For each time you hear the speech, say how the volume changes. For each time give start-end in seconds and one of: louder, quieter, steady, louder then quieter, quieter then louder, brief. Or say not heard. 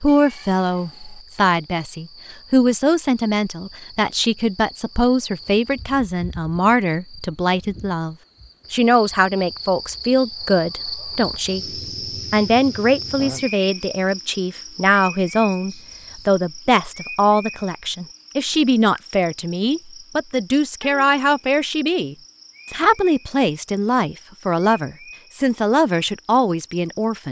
0.0-11.6 steady
12.3-27.2 steady.